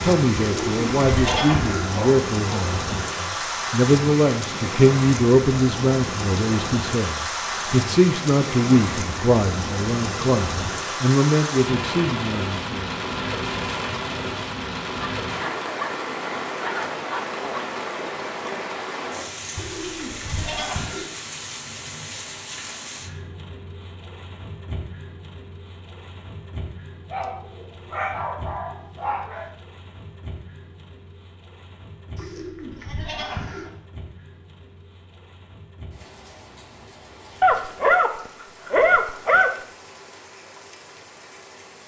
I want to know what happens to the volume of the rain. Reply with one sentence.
The loudness of the rain goes down.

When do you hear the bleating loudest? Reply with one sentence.
The loudest moment of the bleating is at 1 second.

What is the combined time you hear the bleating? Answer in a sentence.
You can hear the bleating for 5 seconds altogether.